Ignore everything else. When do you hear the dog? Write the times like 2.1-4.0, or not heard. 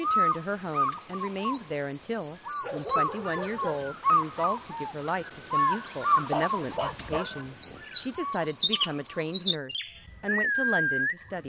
2.6-4.0, 6.3-8.3.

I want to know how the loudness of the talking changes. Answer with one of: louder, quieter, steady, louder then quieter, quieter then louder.
steady.